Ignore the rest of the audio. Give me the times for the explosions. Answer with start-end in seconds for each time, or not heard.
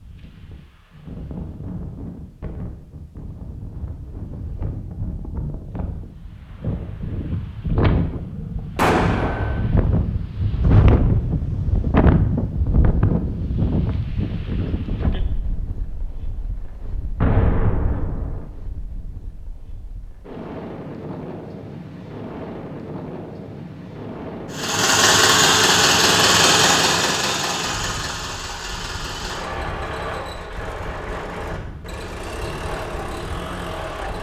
8.8-9.6, 17.2-18.5.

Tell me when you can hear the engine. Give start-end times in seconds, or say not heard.
24.5-34.1.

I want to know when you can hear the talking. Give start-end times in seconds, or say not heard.
not heard.